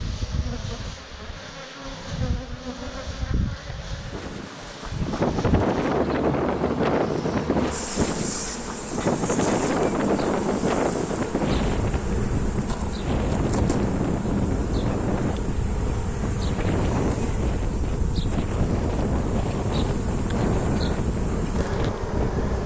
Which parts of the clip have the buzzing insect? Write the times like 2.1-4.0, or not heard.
0.0-22.6.